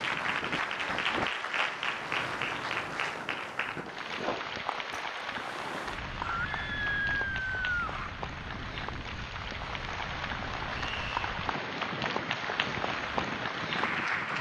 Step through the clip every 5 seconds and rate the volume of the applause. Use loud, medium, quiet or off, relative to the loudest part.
loud, medium, loud.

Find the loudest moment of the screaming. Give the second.
7 s.